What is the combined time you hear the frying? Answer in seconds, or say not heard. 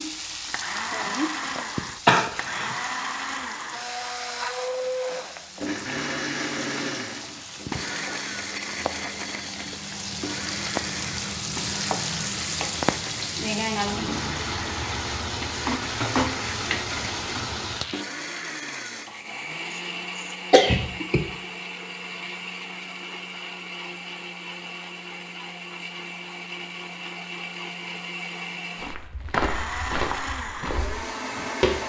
18 s.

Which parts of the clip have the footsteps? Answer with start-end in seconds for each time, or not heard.
28.8-31.8.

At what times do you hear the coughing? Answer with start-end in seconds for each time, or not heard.
2.0-2.8, 20.5-21.2.